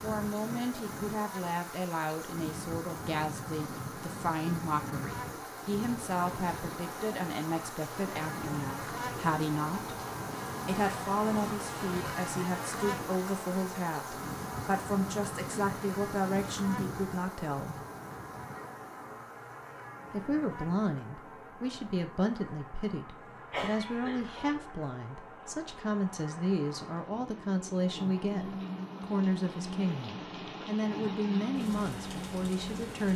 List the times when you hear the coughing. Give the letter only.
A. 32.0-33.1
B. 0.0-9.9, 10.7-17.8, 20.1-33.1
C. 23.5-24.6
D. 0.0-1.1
C.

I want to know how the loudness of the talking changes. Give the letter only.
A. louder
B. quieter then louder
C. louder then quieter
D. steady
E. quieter
D.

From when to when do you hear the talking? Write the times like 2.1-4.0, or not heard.
0.0-9.9, 10.7-17.8, 20.1-33.1.